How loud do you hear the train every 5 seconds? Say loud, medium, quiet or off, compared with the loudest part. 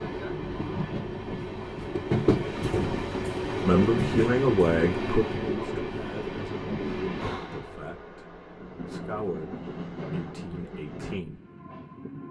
loud, medium, medium.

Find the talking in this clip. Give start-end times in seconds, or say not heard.
3.6-11.4.